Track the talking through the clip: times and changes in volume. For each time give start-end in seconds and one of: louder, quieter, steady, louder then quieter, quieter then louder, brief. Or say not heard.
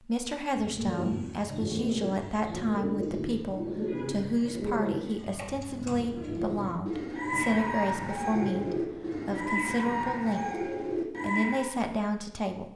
0.0-12.7 steady.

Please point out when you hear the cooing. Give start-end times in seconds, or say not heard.
0.5-11.8.